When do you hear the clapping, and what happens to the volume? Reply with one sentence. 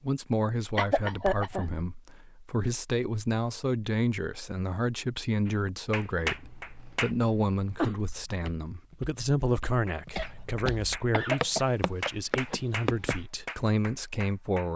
You can hear the clapping briefly from 5.5 to 7.1 s; and from 9.8 to 14.7 s, getting louder then quieter.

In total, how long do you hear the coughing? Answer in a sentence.
The coughing can be heard for 4 seconds in total.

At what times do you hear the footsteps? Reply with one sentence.
You can hear the footsteps from 8.1 to 13.2 s.